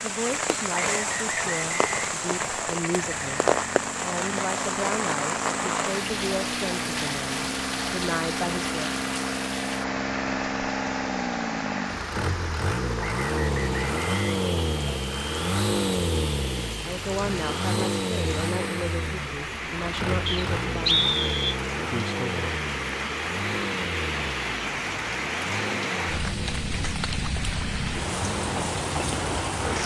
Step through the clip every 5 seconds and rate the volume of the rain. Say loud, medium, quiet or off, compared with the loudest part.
loud, loud, medium, medium, loud, loud.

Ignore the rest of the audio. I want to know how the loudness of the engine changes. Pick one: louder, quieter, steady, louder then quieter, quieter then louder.
louder then quieter.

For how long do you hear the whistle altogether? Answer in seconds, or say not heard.
5 s.